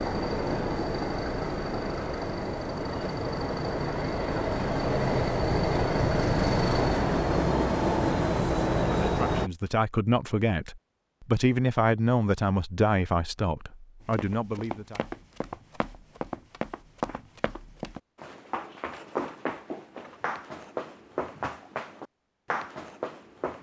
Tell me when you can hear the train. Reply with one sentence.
The train can be heard from 0.0 to 9.5 s.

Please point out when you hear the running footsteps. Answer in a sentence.
You can hear the running footsteps from 14.0 to 23.5 s.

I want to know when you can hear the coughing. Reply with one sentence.
The coughing can't be heard in this clip.